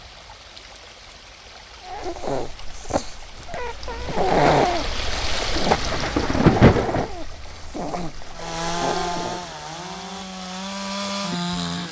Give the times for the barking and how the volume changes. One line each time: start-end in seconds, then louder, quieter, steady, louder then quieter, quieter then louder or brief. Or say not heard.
1.8-9.4 louder then quieter.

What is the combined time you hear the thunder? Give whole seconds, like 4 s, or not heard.
3 s.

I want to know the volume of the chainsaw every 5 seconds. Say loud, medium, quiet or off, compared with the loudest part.
off, loud, loud.